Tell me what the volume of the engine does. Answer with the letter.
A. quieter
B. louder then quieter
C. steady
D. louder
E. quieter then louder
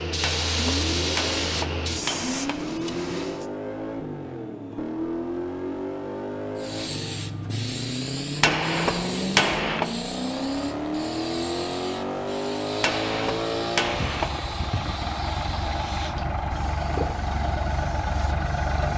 C.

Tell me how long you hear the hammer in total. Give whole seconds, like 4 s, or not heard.
6 s.